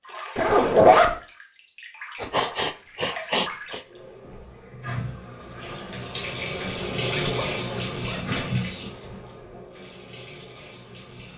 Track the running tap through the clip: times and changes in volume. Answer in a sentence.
The running tap can be heard from 0.0 to 11.3 s, getting louder then quieter.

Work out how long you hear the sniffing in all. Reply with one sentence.
You can hear the sniffing for 2 seconds altogether.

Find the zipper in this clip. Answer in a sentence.
You can hear the zipper from 0.3 to 1.1 s and from 6.7 to 8.4 s.